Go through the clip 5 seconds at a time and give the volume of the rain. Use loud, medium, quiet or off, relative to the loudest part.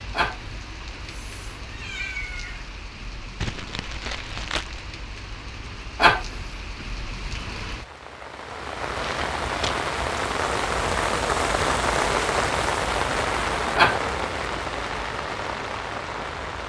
quiet, medium, loud, medium.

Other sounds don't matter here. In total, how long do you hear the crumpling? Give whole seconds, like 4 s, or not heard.
2 s.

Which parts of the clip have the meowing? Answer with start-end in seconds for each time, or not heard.
0.1-2.6, 6.0-6.5, 13.8-14.6.